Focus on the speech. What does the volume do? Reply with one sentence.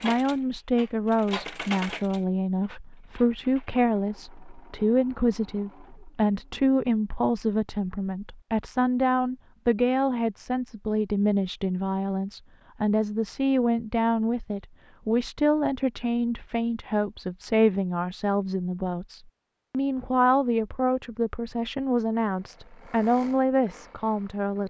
The loudness of the speech stays about the same.